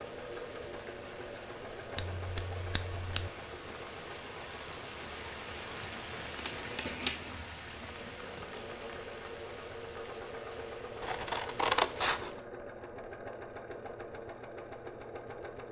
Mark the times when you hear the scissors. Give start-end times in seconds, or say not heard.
1.9-3.3, 6.3-8.8, 11.0-12.4.